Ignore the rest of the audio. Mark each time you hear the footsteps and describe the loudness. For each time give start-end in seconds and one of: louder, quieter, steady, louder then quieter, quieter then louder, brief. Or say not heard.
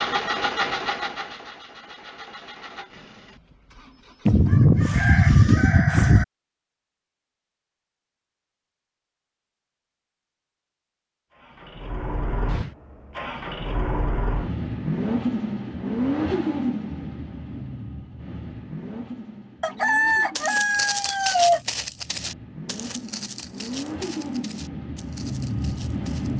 20.1-26.3 quieter.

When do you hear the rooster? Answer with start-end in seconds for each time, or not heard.
4.2-6.2, 19.6-21.6.